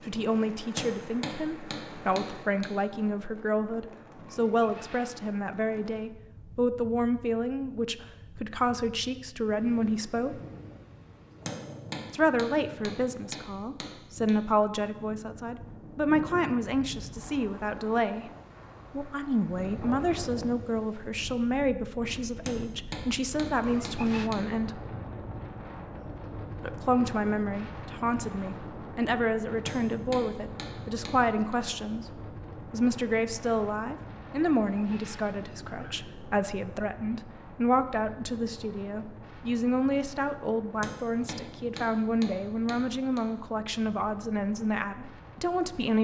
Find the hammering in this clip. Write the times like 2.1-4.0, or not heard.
0.8-2.7, 11.4-14.3, 22.4-24.4, 29.6-31.6, 40.8-43.2.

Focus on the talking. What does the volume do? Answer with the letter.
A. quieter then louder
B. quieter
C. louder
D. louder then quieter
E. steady
E.